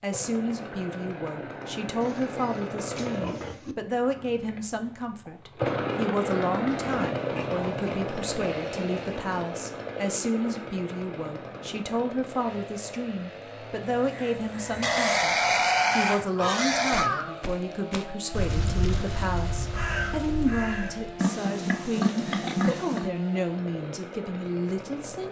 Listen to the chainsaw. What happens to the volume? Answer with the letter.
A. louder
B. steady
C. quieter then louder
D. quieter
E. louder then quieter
E.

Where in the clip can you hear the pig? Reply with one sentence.
The pig can be heard from 2.0 to 3.8 s, from 6.7 to 9.4 s, from 14.8 to 17.1 s and from 21.1 to 23.1 s.